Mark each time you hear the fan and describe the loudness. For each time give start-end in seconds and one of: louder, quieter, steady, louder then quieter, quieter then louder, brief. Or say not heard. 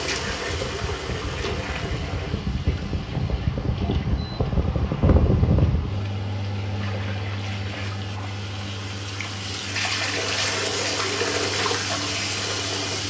0.0-13.0 louder then quieter.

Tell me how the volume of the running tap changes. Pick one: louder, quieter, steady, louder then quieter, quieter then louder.
quieter then louder.